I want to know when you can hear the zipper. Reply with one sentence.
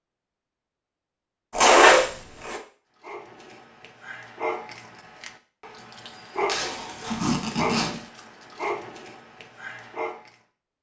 The zipper can be heard from 1.5 to 2.6 s and from 6.5 to 8.0 s.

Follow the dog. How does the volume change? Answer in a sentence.
The volume of the dog goes up, then down.